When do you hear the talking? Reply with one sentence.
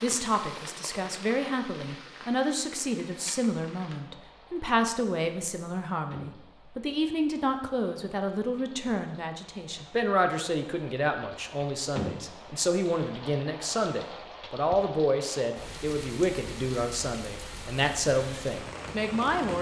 You can hear the talking from 0.0 to 19.5 s.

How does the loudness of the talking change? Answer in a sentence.
The volume of the talking stays about the same.